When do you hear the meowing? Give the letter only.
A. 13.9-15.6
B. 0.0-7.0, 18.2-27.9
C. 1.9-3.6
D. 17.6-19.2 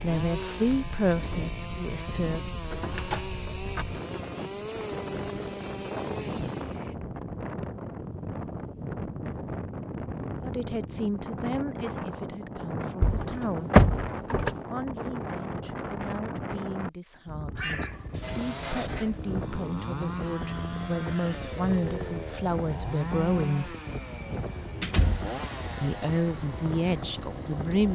D.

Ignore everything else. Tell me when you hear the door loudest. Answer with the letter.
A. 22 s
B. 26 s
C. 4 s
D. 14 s
D.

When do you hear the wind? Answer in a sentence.
You can hear the wind from 0.2 to 27.9 s.